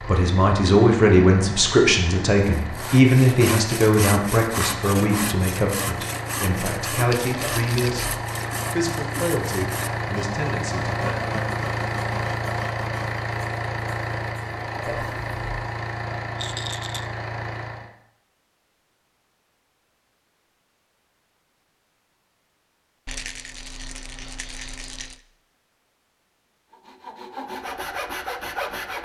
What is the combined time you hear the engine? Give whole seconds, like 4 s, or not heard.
18 s.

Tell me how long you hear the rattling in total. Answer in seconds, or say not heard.
4 s.